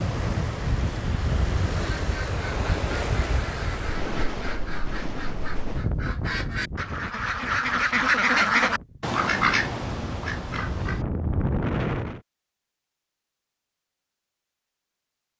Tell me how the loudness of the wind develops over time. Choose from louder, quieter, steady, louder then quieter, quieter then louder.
quieter then louder.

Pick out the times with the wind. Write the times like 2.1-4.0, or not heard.
0.0-12.2.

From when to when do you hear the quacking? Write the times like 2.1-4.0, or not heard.
1.7-11.1.